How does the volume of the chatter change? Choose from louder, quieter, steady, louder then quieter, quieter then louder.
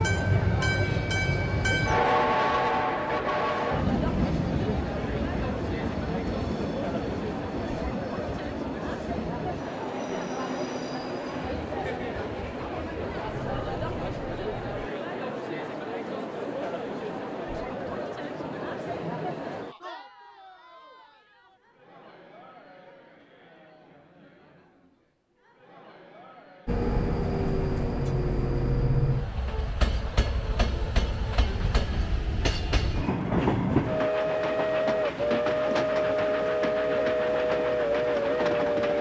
quieter.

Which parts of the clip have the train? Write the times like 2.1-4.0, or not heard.
0.0-14.9, 26.6-38.9.